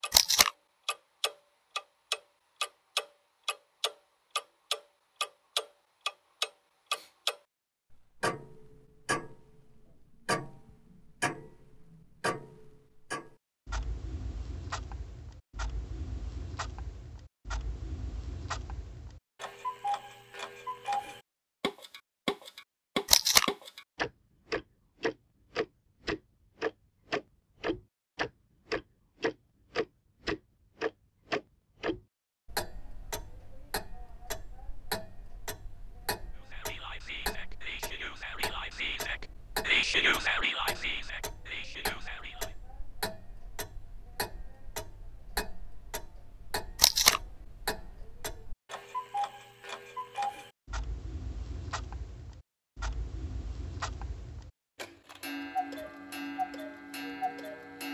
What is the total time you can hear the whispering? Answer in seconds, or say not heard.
6 s.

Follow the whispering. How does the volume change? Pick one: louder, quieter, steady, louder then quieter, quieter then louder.
louder then quieter.